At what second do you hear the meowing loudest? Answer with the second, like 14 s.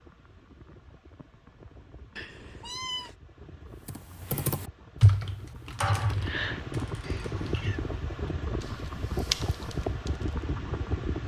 3 s.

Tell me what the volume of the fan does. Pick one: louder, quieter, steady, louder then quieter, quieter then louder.
louder.